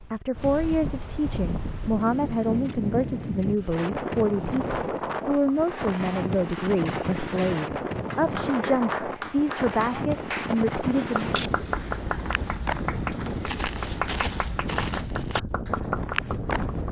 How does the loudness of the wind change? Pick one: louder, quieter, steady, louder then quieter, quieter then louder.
steady.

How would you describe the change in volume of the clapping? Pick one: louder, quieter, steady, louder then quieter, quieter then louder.
louder.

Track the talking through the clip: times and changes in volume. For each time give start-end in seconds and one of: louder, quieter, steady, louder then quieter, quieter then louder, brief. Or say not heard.
0.0-11.3 steady.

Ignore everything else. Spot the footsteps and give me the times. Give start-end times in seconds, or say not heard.
11.2-16.8.